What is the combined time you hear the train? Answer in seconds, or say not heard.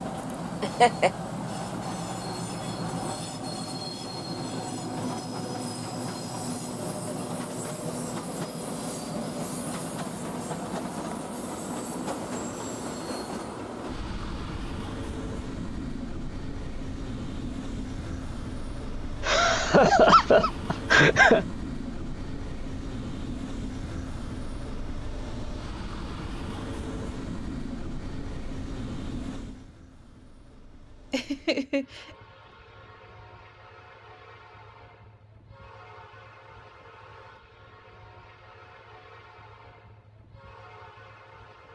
42 s.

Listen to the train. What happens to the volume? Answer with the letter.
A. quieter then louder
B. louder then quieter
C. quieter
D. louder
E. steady
C.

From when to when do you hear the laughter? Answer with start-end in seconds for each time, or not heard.
0.6-1.1, 19.2-21.4, 31.1-32.0.